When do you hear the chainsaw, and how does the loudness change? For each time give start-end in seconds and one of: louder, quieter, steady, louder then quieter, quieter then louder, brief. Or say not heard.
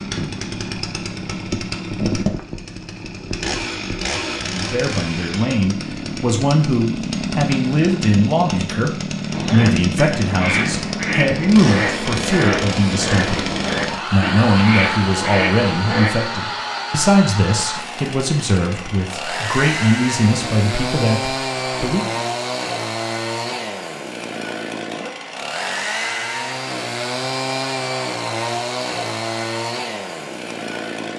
0.0-31.1 steady.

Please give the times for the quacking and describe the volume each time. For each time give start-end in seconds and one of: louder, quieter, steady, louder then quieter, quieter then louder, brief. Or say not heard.
9.3-16.1 steady.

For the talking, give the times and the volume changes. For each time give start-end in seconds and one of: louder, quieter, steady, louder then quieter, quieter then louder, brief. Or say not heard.
4.5-22.2 steady.